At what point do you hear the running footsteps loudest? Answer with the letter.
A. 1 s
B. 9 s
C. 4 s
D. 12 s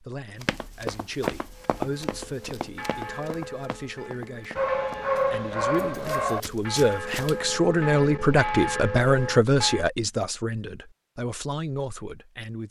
A.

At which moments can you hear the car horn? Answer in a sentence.
You can't hear the car horn here.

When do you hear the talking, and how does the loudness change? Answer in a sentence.
The talking can be heard from 0.0 to 12.6 s, getting louder then quieter.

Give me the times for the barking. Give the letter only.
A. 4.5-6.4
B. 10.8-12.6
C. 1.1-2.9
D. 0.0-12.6
A.